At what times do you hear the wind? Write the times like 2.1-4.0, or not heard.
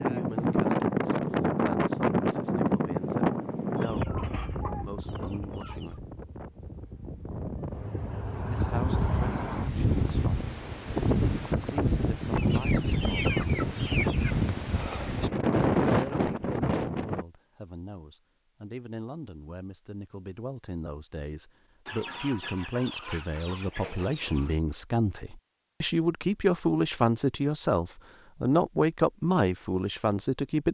0.0-17.2.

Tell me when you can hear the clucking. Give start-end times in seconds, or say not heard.
3.8-6.0, 12.3-14.3, 21.9-24.6.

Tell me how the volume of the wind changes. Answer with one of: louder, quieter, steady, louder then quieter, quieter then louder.
quieter then louder.